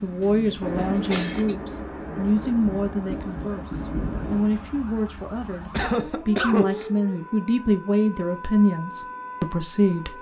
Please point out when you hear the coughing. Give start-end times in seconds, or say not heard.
0.2-1.6, 5.7-6.9.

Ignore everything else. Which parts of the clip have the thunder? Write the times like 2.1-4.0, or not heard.
0.6-4.5.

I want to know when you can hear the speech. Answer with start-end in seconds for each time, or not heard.
0.0-10.1.